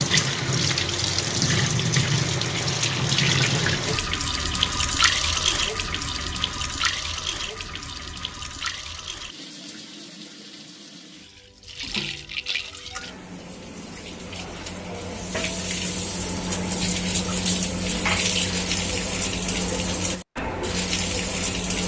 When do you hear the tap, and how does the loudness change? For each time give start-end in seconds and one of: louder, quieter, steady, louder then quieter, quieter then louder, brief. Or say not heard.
0.0-21.8 quieter then louder.